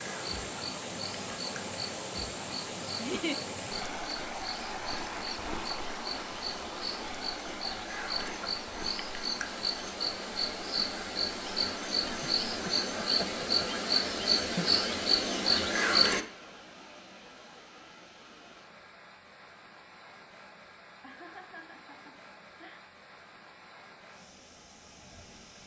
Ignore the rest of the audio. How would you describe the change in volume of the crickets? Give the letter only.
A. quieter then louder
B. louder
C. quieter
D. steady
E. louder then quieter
B.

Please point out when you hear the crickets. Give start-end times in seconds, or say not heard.
0.0-16.2.